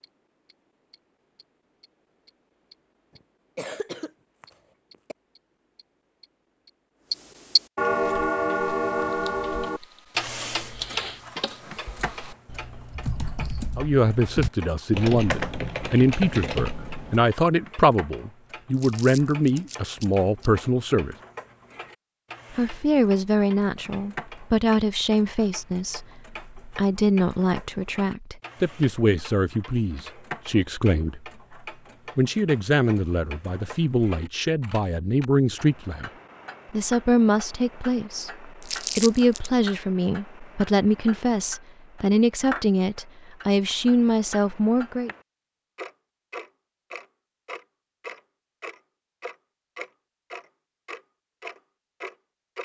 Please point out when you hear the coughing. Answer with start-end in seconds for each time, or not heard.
3.1-5.2.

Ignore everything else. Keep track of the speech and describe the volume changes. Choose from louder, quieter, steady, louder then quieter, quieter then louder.
steady.